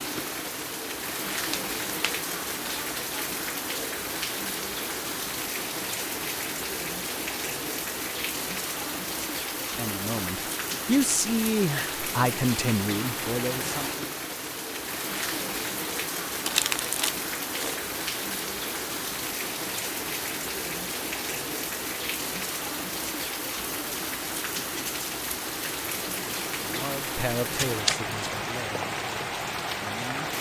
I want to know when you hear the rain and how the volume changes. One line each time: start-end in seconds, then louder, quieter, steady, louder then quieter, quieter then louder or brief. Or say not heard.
0.0-30.3 steady.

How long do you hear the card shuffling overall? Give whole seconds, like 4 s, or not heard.
3 s.